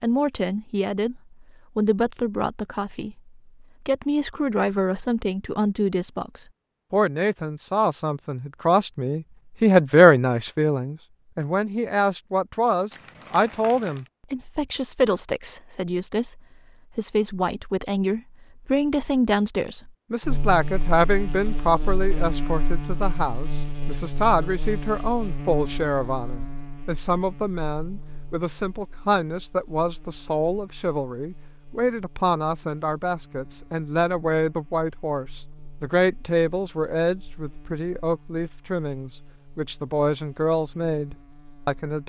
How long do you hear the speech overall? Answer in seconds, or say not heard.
42 s.